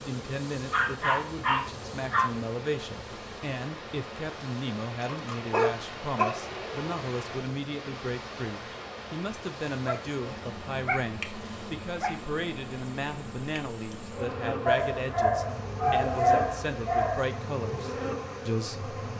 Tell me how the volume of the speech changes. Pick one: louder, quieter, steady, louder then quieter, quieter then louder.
steady.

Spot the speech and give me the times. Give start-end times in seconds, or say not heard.
0.1-18.9.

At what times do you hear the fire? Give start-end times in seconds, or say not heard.
not heard.